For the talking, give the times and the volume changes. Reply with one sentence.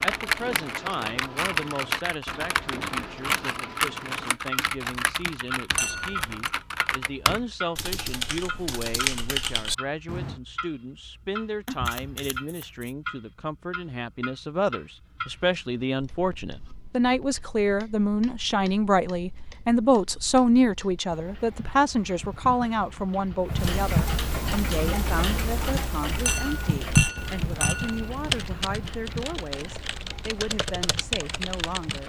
You can hear the talking from 0.0 to 32.0 s, getting louder then quieter.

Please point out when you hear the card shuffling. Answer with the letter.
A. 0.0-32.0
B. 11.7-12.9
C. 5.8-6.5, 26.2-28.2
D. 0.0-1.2
B.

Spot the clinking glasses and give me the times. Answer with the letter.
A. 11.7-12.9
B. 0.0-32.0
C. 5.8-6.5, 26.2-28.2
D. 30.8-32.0
C.